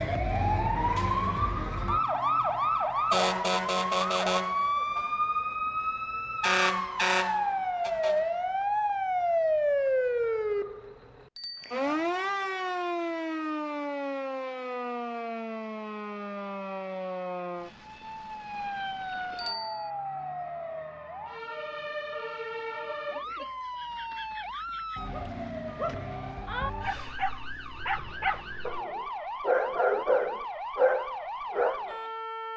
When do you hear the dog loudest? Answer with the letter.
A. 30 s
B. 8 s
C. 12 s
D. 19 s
A.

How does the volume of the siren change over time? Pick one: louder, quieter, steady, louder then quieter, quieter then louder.
quieter.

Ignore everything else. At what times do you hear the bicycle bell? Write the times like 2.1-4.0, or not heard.
11.3-11.8, 19.4-19.9.